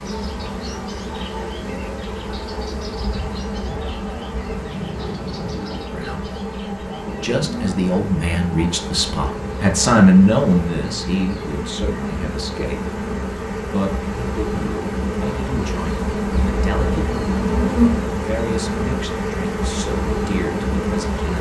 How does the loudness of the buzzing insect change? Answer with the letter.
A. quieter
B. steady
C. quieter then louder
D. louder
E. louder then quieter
D.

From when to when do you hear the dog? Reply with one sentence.
The dog can't be heard in this clip.